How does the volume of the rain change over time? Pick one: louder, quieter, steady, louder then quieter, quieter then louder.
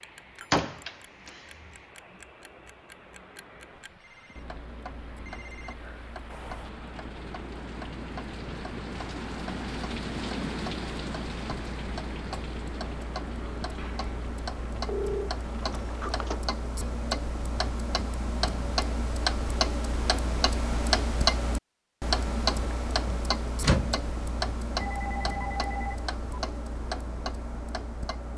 louder then quieter.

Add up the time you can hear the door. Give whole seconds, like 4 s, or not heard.
3 s.